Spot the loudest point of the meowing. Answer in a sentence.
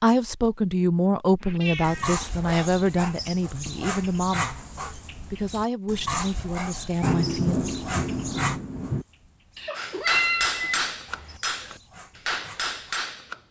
The loudest moment of the meowing is at 10 seconds.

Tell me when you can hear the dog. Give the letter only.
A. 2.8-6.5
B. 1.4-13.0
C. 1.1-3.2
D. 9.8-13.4
B.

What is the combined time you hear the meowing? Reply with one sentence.
You can hear the meowing for 3 seconds altogether.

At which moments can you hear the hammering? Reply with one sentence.
You can hear the hammering from 9.8 to 13.4 s.